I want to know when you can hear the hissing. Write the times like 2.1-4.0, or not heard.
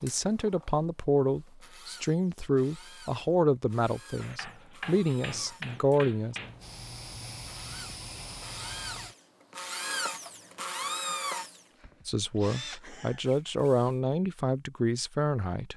6.3-9.2.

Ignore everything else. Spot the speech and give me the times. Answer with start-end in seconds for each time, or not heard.
0.0-6.3, 12.1-15.7.